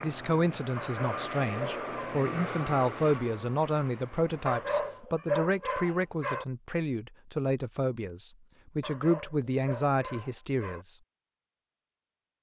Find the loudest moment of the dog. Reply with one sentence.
The volume of the dog peaks at 5 seconds.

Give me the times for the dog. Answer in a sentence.
You can hear the dog from 0.8 to 2.2 s, from 4.5 to 6.5 s and from 8.8 to 10.8 s.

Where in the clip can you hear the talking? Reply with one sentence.
The talking can be heard from 0.0 to 10.9 s.